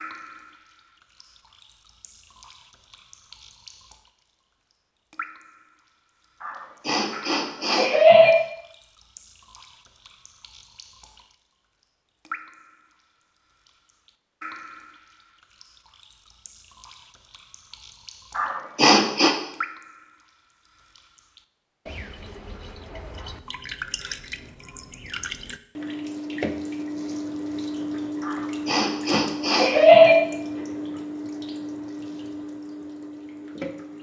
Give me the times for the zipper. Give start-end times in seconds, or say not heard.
not heard.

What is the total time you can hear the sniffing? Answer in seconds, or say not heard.
5 s.